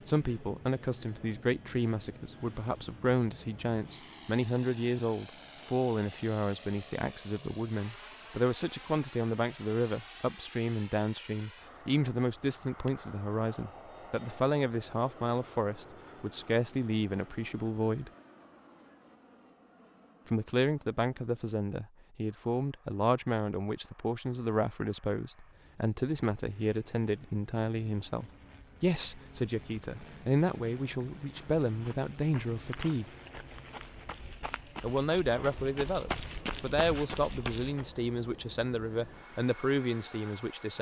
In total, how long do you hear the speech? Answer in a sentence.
The speech can be heard for 37 seconds in total.